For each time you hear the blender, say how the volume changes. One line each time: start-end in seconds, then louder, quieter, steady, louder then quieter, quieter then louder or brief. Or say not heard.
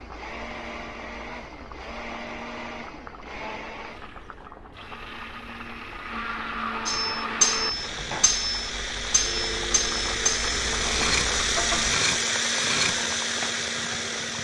0.0-14.3 louder.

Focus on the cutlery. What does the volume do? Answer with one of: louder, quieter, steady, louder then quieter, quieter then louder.
quieter.